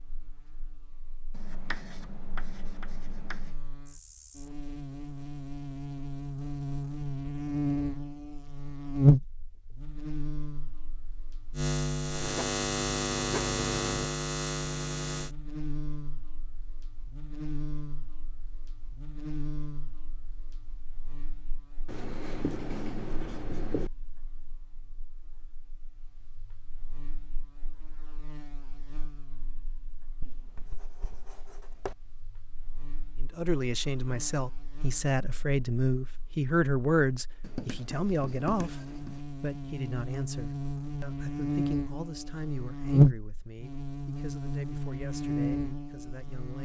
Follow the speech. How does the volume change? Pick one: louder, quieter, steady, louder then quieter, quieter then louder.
quieter.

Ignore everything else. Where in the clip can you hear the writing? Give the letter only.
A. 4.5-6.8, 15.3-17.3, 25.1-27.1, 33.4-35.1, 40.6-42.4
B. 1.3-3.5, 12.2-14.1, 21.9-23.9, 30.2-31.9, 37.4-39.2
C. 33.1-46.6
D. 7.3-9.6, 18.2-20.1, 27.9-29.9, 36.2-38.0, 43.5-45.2
B.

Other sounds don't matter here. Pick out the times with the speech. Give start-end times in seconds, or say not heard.
33.1-46.6.